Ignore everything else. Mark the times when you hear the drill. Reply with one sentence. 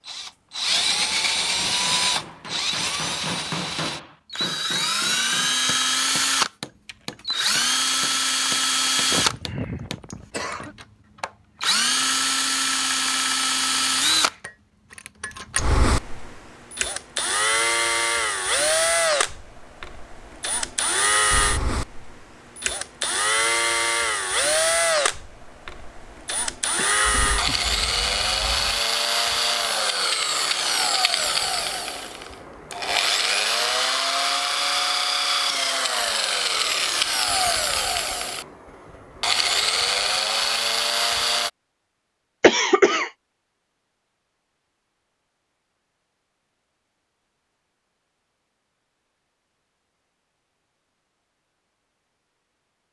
You can hear the drill from 0.0 to 41.5 s.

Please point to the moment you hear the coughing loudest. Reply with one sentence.
The volume of the coughing peaks at 43 seconds.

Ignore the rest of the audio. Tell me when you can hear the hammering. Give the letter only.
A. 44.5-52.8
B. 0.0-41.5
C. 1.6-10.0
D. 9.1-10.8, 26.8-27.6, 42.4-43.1
C.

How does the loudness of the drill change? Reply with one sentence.
The volume of the drill stays about the same.